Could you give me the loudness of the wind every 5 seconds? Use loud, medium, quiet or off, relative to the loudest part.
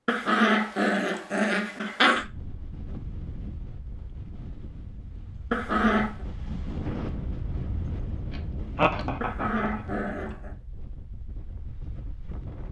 medium, loud, medium.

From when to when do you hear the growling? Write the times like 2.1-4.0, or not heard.
0.1-2.2, 5.5-6.2, 9.2-10.6.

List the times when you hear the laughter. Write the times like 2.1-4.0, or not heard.
8.3-9.9.